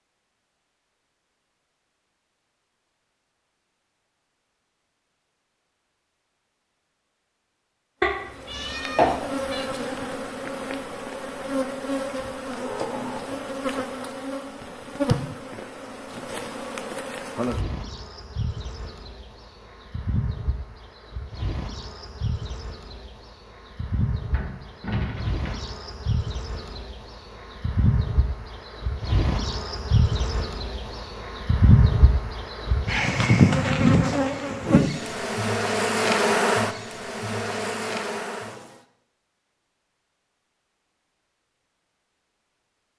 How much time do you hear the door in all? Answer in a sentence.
You can hear the door for 2 seconds altogether.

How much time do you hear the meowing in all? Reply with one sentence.
The meowing can be heard for 2 seconds in total.